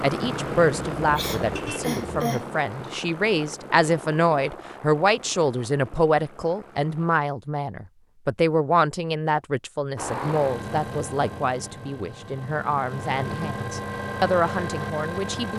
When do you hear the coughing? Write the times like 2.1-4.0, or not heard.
1.1-2.5.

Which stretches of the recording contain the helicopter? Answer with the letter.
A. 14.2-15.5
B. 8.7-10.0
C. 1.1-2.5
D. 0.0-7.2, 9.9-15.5
D.